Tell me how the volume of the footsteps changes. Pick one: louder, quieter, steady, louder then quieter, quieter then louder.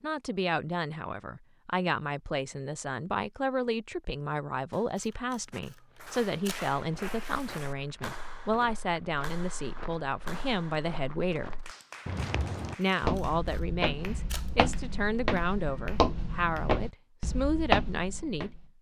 louder.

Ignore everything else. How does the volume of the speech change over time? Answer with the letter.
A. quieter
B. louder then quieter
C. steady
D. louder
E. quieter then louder
C.